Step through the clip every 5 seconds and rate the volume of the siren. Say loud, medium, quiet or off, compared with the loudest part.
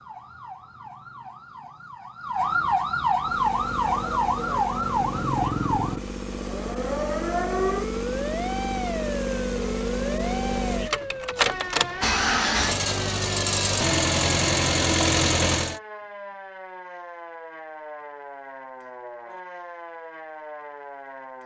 loud, loud, medium, quiet, quiet.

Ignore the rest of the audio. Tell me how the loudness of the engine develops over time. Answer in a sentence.
The volume of the engine goes up.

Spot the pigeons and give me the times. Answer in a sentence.
The pigeons can't be heard in this clip.